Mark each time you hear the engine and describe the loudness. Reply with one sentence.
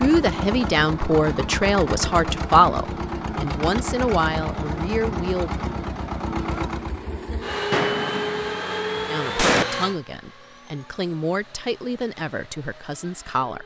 The engine can be heard from 0.0 to 13.6 s, getting quieter.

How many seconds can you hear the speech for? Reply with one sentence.
The speech can be heard for 10 seconds in total.